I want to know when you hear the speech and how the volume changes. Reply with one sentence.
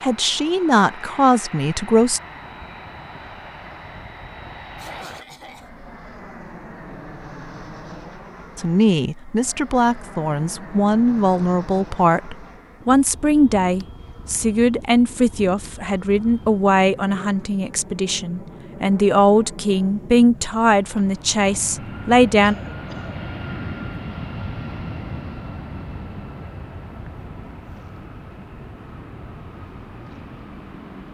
You can hear the speech briefly from 0.0 to 2.2 s; and from 8.6 to 22.6 s, at a steady volume.